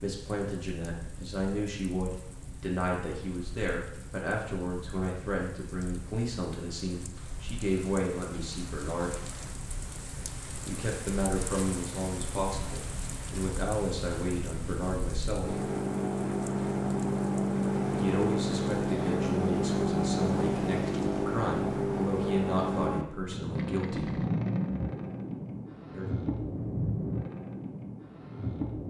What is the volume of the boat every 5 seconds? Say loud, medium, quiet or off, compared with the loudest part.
quiet, quiet, quiet, loud, loud, medium.